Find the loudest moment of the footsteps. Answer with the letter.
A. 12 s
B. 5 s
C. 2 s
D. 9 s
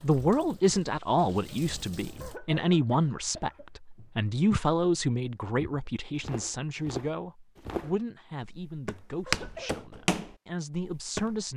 D.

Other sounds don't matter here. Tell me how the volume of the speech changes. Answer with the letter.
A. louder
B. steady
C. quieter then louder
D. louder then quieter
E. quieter
E.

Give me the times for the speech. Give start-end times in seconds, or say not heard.
0.0-11.5.